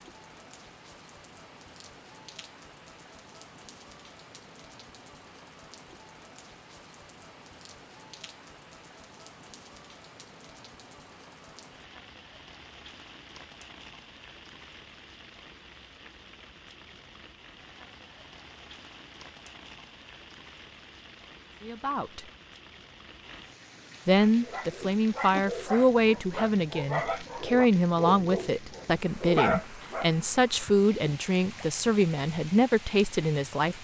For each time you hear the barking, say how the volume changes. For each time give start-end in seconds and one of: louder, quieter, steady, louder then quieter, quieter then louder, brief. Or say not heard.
24.2-30.1 louder.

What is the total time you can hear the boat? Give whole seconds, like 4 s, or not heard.
not heard.